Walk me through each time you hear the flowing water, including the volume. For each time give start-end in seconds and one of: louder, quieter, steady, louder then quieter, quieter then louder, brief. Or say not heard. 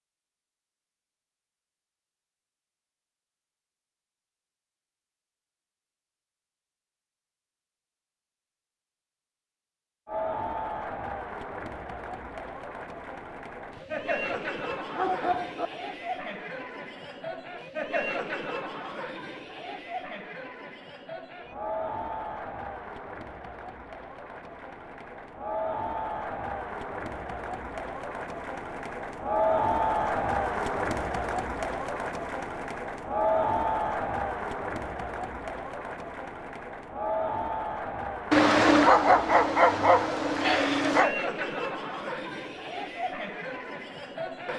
not heard.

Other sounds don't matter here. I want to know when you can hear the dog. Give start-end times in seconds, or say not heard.
13.8-15.7, 38.3-41.1.